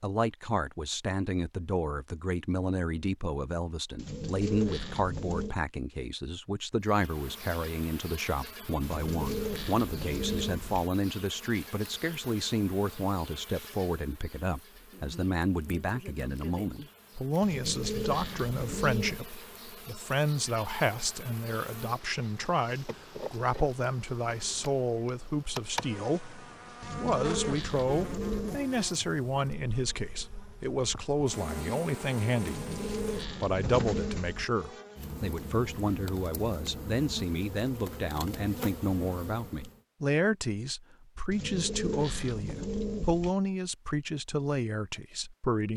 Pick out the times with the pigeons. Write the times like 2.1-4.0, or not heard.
4.0-5.5, 8.8-10.8, 17.4-19.3, 26.8-28.6, 32.5-34.5, 41.3-43.4.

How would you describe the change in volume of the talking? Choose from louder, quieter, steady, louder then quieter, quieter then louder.
steady.